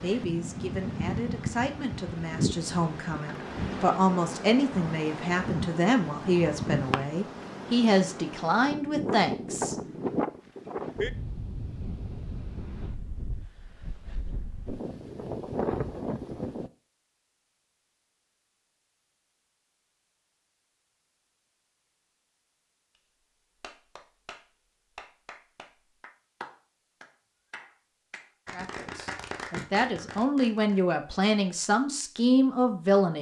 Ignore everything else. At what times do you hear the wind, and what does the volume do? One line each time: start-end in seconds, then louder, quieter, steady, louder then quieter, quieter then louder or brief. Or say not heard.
0.0-16.7 steady.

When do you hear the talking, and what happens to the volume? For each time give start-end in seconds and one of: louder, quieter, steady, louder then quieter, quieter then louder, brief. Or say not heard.
0.0-9.8 louder
28.5-33.1 louder.